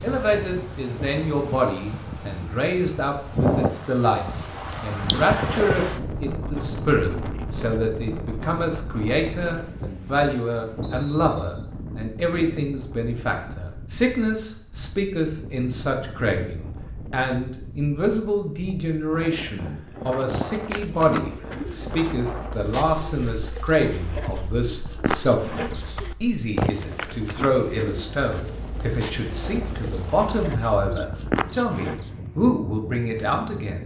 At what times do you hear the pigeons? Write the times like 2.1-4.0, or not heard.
20.3-32.1.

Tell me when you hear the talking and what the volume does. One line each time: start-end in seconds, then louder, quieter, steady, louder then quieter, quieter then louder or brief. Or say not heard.
0.0-33.8 steady.